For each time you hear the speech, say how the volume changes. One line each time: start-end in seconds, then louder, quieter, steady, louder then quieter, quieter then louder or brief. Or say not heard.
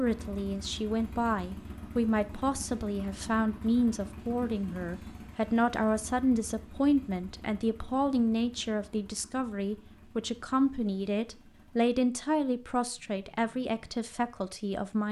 0.0-15.0 steady.